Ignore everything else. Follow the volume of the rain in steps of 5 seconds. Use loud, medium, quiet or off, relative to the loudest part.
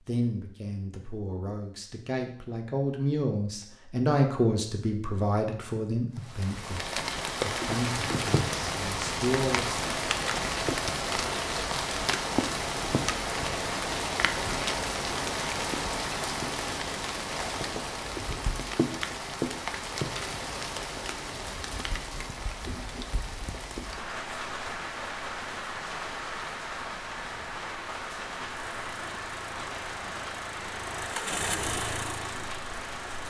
off, loud, loud, loud, medium, medium, medium.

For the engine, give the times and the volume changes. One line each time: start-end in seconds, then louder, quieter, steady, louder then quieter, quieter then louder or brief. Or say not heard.
28.7-33.2 louder then quieter.